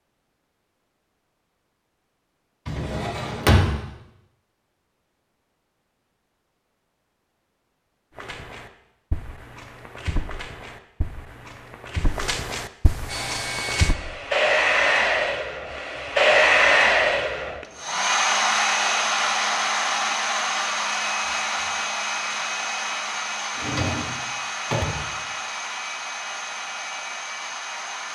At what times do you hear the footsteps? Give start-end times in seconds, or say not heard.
8.2-13.9.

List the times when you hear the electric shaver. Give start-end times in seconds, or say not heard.
not heard.